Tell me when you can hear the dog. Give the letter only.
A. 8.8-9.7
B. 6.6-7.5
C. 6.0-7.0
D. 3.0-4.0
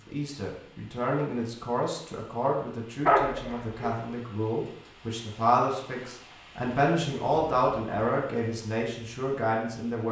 D.